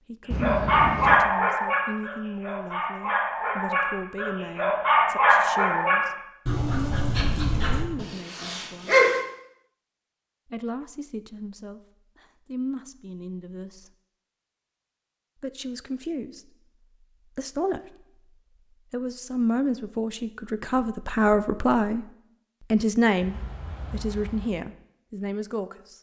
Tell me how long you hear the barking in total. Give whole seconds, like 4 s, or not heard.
9 s.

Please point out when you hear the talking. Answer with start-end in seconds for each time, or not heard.
0.1-8.9, 10.4-13.9, 15.4-18.2, 18.9-22.1, 22.7-25.9.